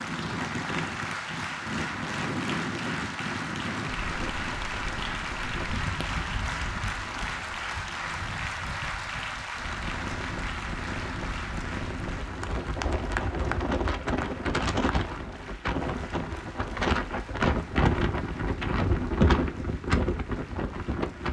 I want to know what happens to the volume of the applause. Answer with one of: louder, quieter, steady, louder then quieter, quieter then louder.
quieter.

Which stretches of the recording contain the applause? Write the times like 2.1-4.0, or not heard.
0.0-21.2.